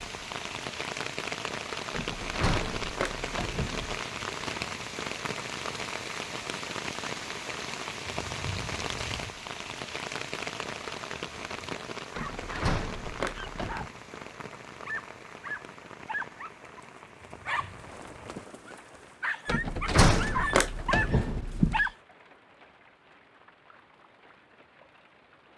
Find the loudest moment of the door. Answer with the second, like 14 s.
20 s.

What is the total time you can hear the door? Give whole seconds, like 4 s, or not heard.
6 s.